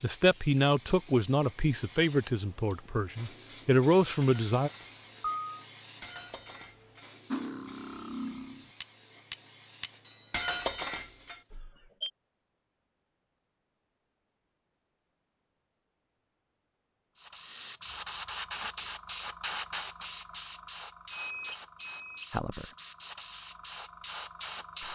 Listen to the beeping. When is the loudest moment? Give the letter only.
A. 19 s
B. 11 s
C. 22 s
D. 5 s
D.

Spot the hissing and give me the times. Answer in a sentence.
The hissing can be heard from 0.0 to 11.6 s and from 17.1 to 24.8 s.